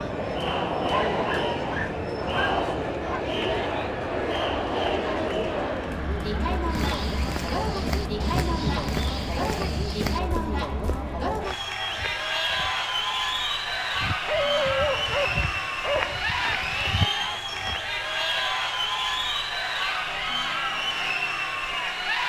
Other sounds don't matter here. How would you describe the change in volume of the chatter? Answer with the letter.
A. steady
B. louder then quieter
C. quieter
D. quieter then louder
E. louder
A.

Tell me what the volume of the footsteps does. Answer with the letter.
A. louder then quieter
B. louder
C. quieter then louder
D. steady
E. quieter
C.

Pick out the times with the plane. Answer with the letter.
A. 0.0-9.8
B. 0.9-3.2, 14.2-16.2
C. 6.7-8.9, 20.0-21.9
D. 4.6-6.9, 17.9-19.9
A.